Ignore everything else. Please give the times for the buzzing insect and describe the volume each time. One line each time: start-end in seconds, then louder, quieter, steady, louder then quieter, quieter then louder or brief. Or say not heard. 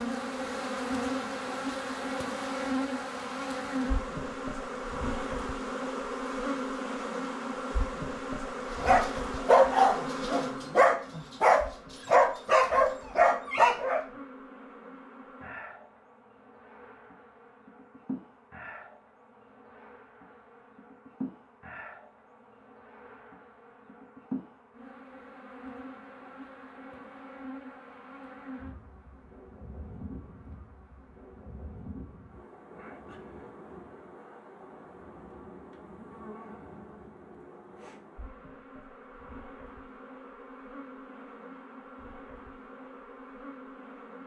0.0-44.2 quieter.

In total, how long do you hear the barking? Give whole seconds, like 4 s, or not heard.
5 s.